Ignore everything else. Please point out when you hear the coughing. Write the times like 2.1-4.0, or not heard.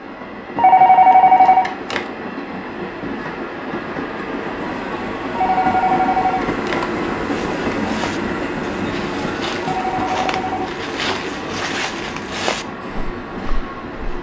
not heard.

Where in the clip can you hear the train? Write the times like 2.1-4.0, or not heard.
0.0-14.1.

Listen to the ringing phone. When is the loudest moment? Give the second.
1 s.